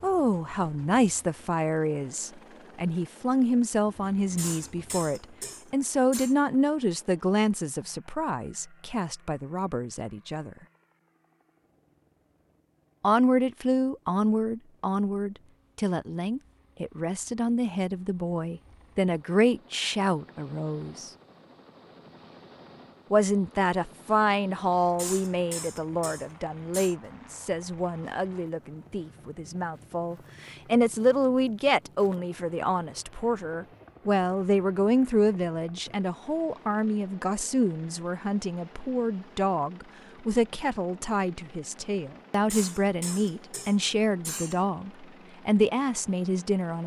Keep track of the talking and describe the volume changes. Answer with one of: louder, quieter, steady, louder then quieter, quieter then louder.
steady.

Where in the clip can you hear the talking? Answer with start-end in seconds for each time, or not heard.
0.0-10.6, 13.0-21.1, 23.1-46.8.